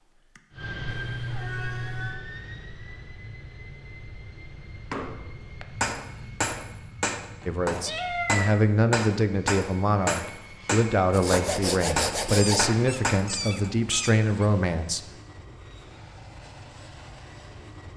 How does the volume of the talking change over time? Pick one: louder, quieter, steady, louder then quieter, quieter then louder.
steady.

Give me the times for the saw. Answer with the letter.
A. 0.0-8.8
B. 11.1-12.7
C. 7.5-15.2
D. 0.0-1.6
B.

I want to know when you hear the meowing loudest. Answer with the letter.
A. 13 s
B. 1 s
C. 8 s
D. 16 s
C.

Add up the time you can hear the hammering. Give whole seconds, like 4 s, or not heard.
9 s.